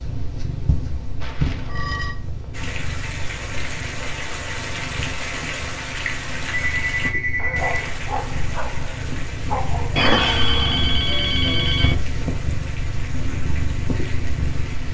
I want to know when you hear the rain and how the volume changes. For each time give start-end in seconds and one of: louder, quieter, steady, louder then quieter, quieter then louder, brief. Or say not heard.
2.5-14.8 quieter.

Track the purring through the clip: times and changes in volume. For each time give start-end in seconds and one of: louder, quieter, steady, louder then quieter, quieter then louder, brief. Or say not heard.
0.0-14.8 quieter then louder.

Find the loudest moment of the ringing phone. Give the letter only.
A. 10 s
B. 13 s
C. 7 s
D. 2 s
A.